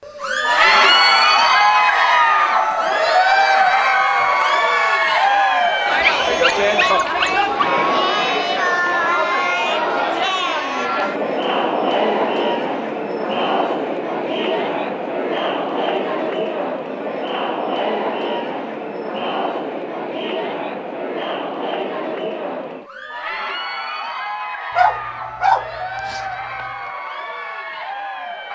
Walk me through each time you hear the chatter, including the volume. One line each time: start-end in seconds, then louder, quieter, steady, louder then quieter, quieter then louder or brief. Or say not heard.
0.1-28.4 quieter.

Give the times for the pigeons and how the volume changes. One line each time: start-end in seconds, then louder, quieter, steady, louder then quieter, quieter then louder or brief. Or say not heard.
not heard.